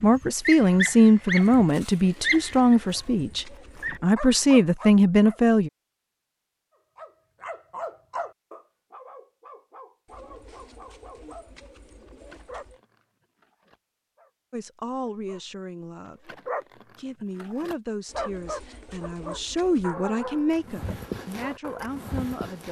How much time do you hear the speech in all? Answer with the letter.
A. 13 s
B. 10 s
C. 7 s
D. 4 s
A.